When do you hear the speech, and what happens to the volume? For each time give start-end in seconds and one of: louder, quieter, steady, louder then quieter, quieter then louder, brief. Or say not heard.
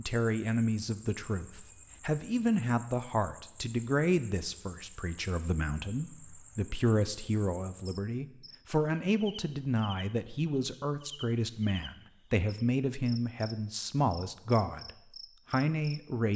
0.0-14.9 steady
15.5-16.3 brief.